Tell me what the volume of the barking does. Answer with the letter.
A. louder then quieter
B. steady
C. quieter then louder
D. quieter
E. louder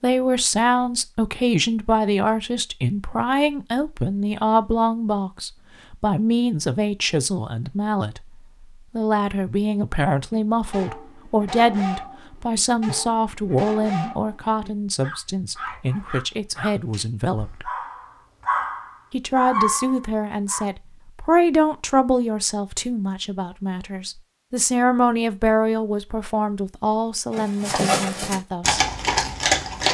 E.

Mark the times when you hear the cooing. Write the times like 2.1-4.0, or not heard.
not heard.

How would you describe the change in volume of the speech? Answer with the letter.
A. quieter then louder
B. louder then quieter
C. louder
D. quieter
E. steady
E.